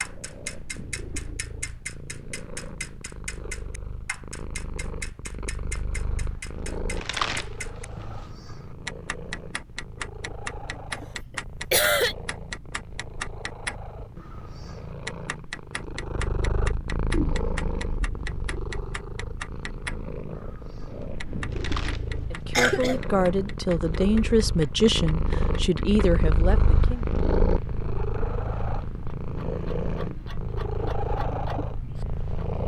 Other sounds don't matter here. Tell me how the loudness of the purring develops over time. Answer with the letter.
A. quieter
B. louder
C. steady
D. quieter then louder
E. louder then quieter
B.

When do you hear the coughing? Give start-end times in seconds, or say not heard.
11.7-12.2, 22.6-23.0.